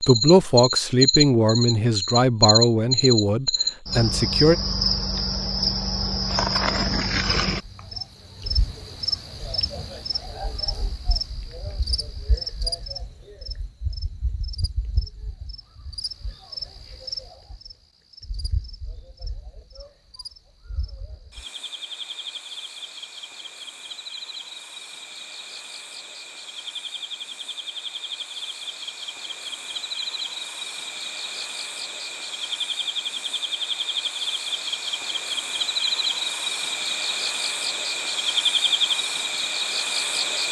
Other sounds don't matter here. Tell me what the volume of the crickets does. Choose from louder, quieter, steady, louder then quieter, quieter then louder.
quieter then louder.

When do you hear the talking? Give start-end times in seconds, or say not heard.
0.1-4.5.